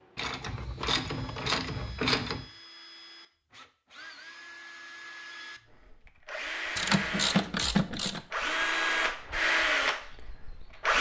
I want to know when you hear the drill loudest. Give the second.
9 s.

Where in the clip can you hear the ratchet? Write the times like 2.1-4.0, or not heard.
0.1-2.5, 6.8-8.2.